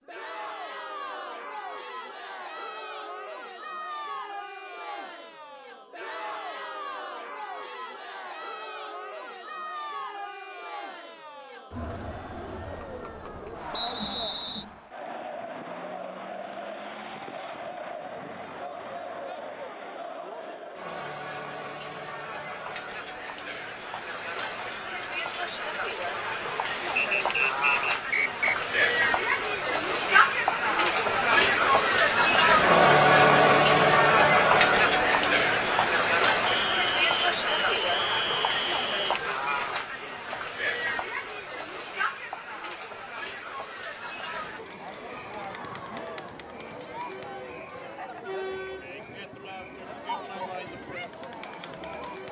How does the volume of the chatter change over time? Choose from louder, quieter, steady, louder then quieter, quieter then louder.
louder then quieter.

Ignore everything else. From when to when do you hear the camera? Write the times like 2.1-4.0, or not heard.
not heard.